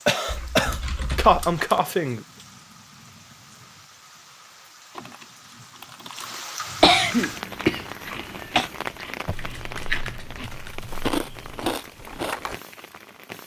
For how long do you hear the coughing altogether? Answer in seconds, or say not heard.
4 s.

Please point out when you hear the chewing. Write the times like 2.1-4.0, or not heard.
7.1-12.6.